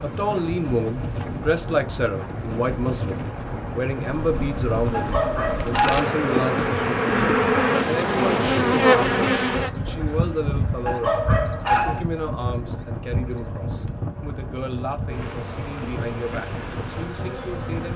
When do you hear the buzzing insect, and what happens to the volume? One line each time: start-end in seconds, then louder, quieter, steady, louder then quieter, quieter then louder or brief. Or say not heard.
0.0-17.9 louder then quieter.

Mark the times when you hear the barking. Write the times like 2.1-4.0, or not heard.
4.9-6.1, 10.8-12.0.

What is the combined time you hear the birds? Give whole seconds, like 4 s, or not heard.
not heard.